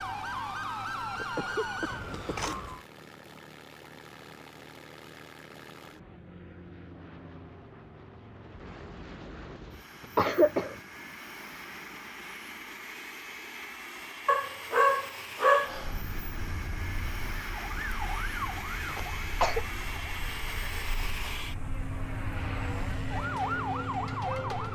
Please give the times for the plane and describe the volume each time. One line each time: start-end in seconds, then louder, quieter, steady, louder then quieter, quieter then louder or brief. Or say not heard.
0.0-24.7 louder.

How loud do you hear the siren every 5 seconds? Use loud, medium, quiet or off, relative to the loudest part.
loud, off, off, medium, loud.